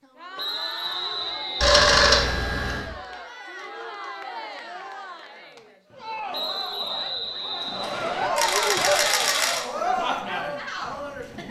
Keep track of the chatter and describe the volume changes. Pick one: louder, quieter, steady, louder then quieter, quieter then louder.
louder.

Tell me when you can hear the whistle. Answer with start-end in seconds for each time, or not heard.
0.3-2.4, 6.3-8.3.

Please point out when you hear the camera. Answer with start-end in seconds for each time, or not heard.
1.6-2.9, 8.3-9.7.